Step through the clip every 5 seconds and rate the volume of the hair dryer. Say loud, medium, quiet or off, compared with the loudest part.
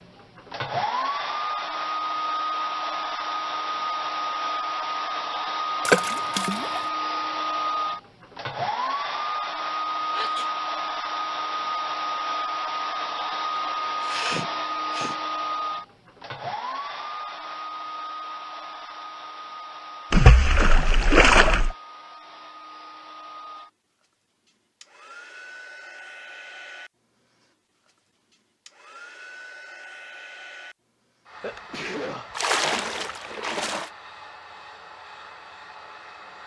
loud, loud, loud, medium, quiet, quiet, quiet, quiet.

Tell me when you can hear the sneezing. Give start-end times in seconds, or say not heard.
10.1-10.5, 14.0-15.2, 31.4-32.4.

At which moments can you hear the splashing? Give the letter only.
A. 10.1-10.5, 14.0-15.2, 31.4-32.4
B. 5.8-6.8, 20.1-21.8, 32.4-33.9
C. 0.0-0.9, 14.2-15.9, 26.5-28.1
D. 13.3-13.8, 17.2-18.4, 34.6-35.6
B.